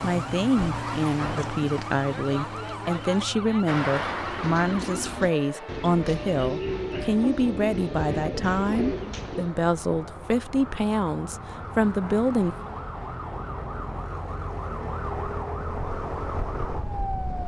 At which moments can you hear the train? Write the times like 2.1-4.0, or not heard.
3.6-6.4.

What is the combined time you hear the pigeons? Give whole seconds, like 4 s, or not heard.
6 s.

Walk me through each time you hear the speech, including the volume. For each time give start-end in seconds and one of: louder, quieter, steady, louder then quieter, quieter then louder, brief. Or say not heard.
0.0-12.7 steady.